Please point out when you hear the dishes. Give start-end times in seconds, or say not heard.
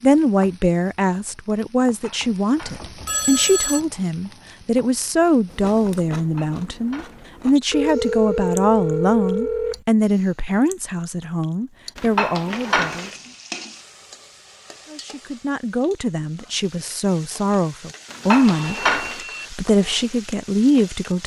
1.9-2.9, 6.2-7.3, 11.9-13.1, 18.1-19.2.